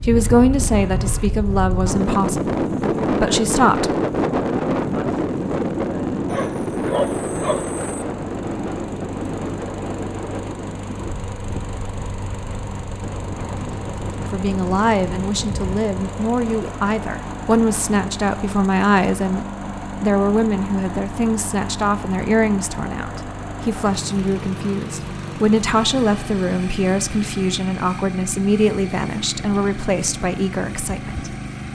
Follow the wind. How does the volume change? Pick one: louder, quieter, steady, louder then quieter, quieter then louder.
quieter.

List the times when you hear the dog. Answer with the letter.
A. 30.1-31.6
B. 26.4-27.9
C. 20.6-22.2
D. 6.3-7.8
D.